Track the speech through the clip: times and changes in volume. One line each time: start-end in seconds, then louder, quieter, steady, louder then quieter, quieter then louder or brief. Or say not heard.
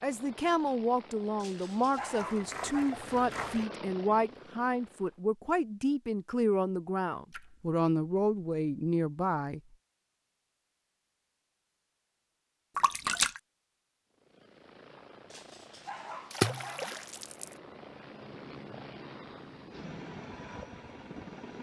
0.0-9.6 steady.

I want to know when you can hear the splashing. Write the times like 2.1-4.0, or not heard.
1.9-3.6, 7.3-7.8, 12.8-13.4, 16.3-17.5.